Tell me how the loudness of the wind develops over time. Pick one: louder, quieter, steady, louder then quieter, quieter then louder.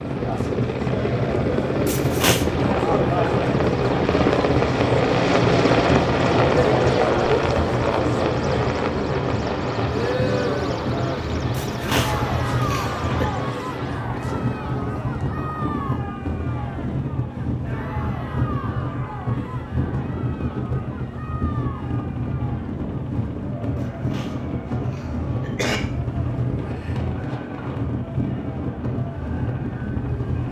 steady.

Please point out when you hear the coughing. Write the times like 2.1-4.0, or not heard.
1.9-2.5, 11.6-13.2, 23.8-25.8.